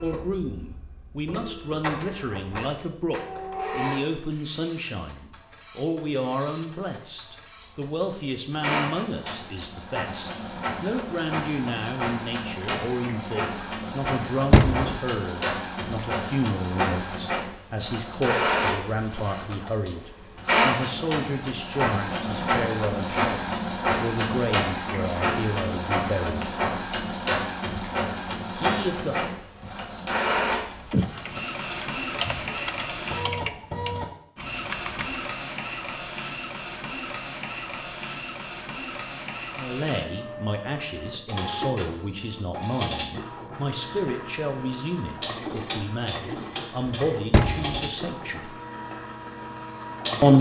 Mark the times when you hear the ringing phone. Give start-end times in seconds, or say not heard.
not heard.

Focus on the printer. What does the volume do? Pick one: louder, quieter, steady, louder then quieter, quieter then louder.
louder then quieter.